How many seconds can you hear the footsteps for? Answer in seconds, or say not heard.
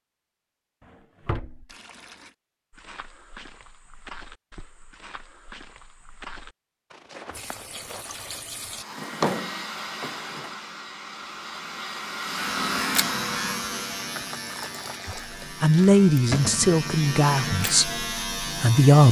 6 s.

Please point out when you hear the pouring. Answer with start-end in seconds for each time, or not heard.
1.6-2.4, 7.3-8.8, 14.1-15.5.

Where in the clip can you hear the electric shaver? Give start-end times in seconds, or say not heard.
12.2-19.0.